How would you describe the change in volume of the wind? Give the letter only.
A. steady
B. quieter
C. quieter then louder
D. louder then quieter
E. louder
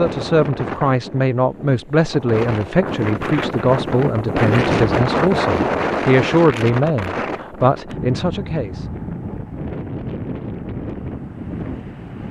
D.